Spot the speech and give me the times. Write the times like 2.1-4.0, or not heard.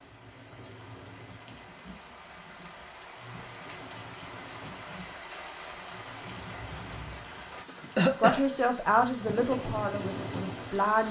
8.2-11.0.